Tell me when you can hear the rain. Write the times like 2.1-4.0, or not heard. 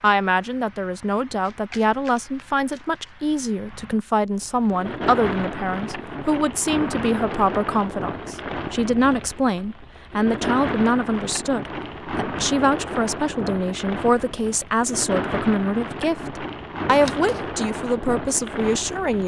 0.0-19.2.